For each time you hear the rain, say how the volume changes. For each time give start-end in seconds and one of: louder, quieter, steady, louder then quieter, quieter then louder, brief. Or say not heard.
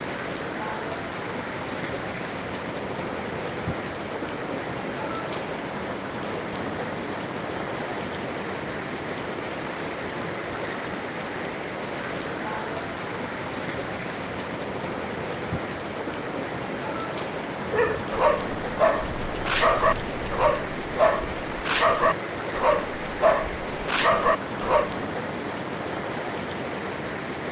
0.0-27.4 steady.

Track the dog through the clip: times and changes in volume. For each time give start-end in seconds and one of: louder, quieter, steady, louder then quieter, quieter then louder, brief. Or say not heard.
17.6-24.9 steady.